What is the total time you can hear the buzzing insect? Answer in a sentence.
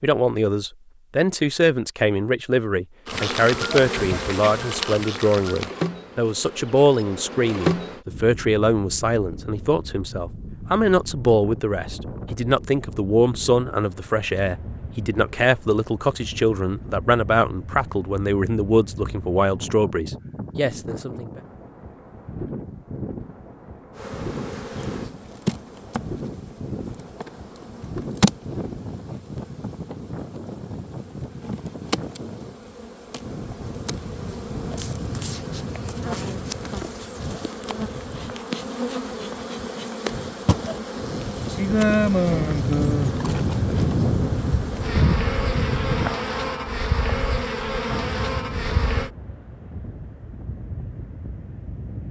You can hear the buzzing insect for 30 seconds altogether.